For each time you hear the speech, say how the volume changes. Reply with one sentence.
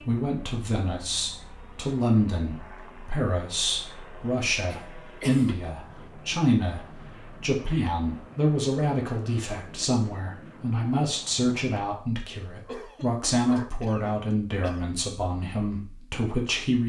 The speech can be heard from 0.0 to 16.8 s, at a steady volume.